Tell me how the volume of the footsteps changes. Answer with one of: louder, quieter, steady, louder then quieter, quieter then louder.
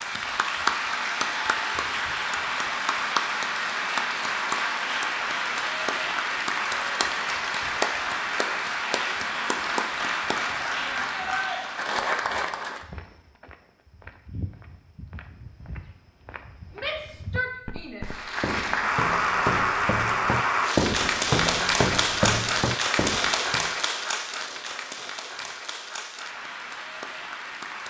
louder.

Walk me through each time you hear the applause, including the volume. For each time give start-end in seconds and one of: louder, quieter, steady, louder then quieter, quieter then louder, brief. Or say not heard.
0.0-12.8 steady
18.1-27.8 quieter.